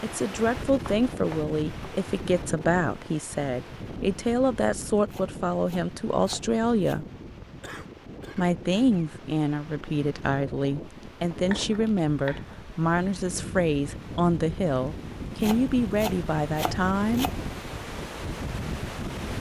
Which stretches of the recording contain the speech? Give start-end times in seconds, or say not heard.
0.0-7.0, 8.3-17.3.